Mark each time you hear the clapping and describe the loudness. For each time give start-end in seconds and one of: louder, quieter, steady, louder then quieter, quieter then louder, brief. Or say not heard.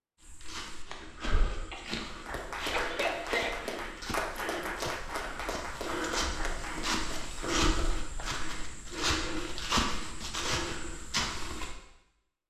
2.0-8.3 quieter.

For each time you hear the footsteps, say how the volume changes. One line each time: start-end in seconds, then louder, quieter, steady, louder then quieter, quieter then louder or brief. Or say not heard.
0.2-11.8 louder.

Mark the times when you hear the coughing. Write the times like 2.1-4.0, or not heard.
1.7-3.6.